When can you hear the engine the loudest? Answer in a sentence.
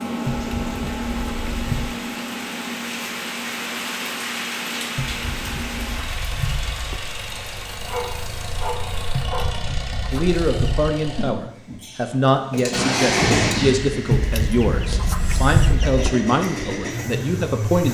The volume of the engine peaks at 13 seconds.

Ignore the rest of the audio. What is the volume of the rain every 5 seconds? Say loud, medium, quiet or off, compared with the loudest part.
loud, loud, off, off.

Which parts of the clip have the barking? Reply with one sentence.
You can hear the barking from 7.8 to 9.5 s.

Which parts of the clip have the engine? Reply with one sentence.
The engine can be heard from 0.0 to 17.8 s.